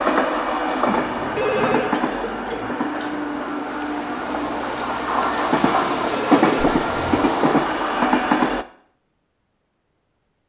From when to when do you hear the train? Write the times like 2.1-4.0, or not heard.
0.0-8.7.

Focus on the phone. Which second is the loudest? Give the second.
2 s.